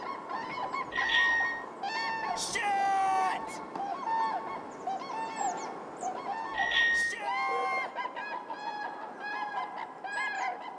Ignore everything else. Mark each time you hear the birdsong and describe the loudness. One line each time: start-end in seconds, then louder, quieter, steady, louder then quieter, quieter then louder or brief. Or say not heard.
0.0-10.7 steady.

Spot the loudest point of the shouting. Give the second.
3 s.